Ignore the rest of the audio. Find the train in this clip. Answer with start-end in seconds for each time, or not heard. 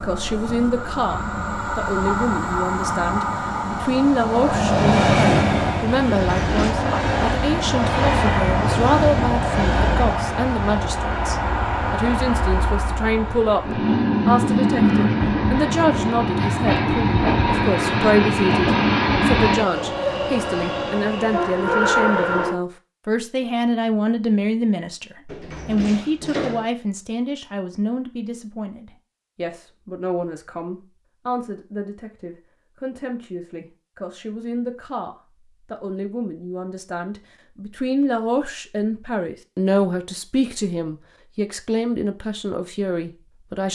0.0-22.6.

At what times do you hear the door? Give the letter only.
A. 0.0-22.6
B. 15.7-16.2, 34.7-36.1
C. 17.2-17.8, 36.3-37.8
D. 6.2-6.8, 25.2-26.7
D.